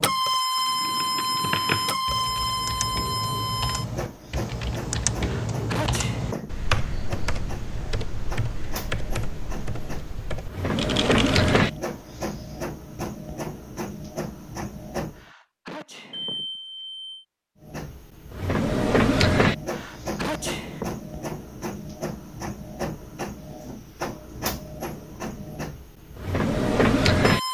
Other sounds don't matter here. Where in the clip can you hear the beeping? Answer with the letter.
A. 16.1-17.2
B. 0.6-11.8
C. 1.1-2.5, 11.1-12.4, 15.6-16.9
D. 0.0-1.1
A.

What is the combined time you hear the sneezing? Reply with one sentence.
You can hear the sneezing for 4 seconds altogether.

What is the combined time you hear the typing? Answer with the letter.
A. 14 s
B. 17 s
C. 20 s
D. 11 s
D.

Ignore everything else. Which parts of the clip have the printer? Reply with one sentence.
You can hear the printer from 0.0 to 15.2 s and from 17.6 to 27.4 s.